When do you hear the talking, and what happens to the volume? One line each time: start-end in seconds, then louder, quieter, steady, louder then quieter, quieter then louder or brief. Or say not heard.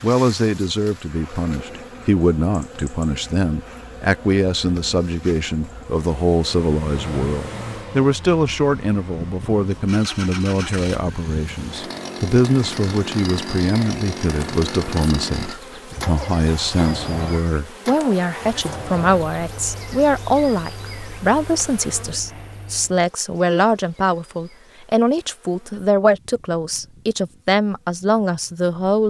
0.0-29.0 steady.